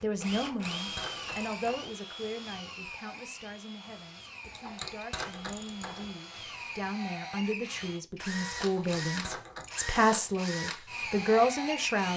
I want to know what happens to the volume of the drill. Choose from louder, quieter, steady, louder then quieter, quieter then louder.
quieter then louder.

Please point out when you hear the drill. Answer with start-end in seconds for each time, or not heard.
0.0-12.1.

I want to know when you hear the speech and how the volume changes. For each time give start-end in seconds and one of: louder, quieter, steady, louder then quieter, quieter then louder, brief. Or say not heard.
0.0-12.1 quieter then louder.